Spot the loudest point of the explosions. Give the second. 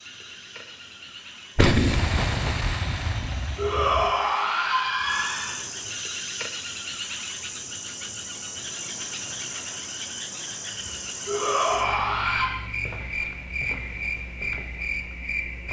2 s.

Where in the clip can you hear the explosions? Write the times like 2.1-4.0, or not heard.
1.6-4.2.